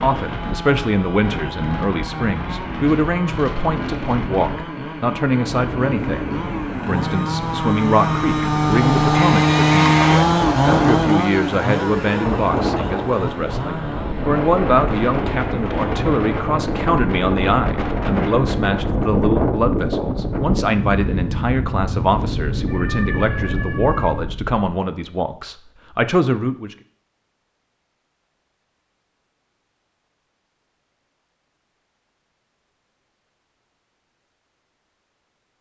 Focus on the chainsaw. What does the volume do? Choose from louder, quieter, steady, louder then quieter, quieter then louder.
louder then quieter.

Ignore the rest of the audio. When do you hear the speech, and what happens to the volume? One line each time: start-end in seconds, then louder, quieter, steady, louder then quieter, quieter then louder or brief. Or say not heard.
0.0-26.8 steady.